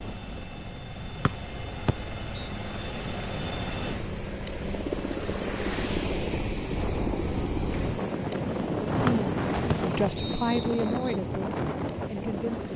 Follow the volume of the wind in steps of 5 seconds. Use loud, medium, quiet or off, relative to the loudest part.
medium, loud, loud.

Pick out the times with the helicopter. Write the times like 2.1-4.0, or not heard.
0.0-12.7.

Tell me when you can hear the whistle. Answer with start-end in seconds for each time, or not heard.
1.2-2.5, 9.1-11.2.